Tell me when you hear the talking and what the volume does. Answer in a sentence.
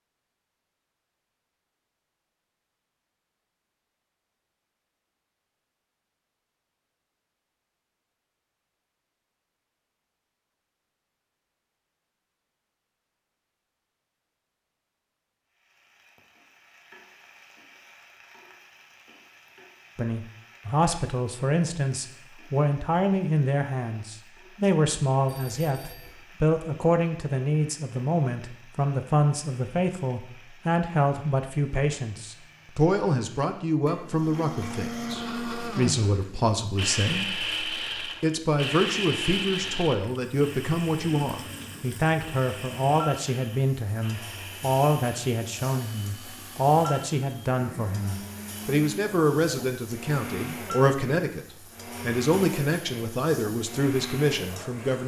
The talking can be heard from 19.9 to 55.0 s, at a steady volume.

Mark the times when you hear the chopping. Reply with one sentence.
You can't hear the chopping here.